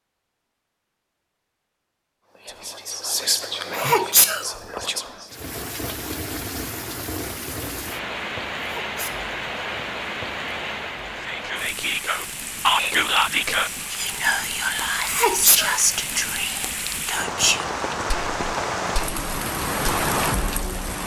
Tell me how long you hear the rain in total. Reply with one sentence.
The rain can be heard for 16 seconds in total.